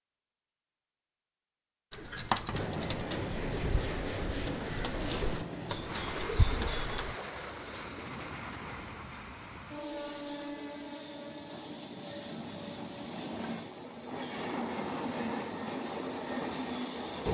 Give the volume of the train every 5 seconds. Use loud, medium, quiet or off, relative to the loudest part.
loud, medium, loud, loud.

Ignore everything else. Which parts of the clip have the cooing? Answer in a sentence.
The cooing can be heard from 1.9 to 7.2 s.